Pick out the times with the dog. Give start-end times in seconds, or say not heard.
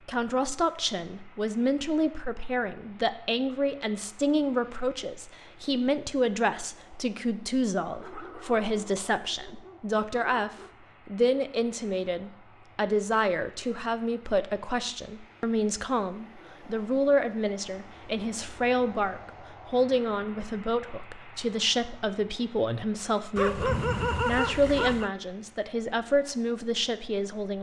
8.0-10.7, 23.4-25.1.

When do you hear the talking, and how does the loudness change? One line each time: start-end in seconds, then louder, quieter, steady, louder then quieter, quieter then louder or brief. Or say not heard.
0.1-27.5 steady.